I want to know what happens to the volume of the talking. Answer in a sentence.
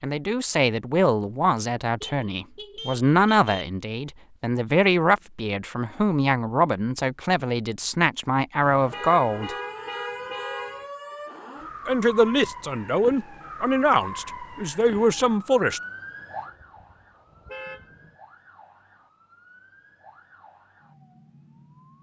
The loudness of the talking stays about the same.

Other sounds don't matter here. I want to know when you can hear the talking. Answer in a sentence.
The talking can be heard from 0.0 to 9.6 s and from 11.8 to 15.8 s.